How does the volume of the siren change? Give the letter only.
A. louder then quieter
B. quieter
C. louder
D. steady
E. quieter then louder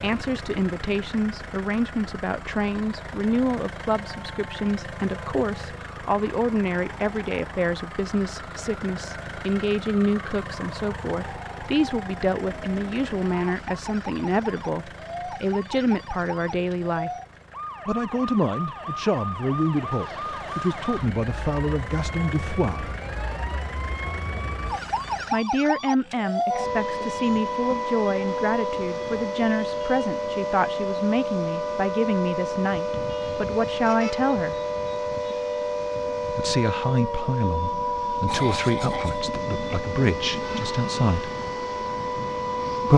C.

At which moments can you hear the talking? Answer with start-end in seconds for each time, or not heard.
0.0-17.1, 17.9-22.9, 25.3-34.5, 36.3-41.3.